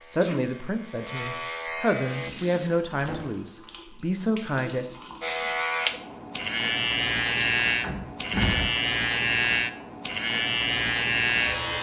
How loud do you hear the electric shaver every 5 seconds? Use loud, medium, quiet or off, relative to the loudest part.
medium, loud, loud.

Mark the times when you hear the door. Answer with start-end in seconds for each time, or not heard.
7.8-8.7.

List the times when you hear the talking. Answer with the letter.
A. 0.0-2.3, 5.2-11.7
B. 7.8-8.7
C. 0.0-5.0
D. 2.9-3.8
C.